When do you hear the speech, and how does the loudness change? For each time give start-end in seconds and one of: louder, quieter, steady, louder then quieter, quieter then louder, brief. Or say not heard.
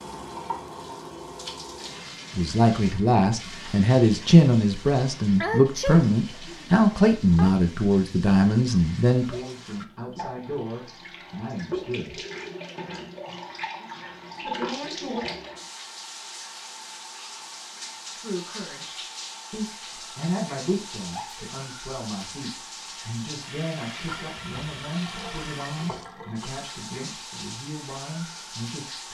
2.4-12.2 quieter
14.4-15.2 brief
18.1-29.0 quieter.